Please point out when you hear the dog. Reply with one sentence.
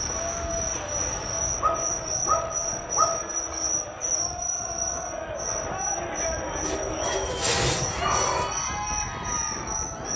You can hear the dog from 1.6 to 3.2 s and from 6.6 to 8.6 s.